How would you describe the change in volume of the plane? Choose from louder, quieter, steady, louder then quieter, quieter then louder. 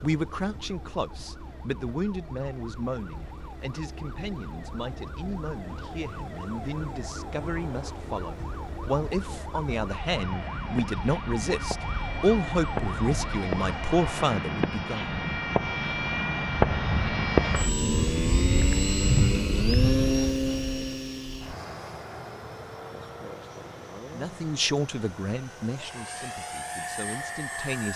louder then quieter.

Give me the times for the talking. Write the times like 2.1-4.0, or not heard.
0.0-15.1, 24.1-27.9.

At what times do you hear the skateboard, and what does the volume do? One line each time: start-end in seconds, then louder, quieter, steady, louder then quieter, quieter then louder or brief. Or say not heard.
not heard.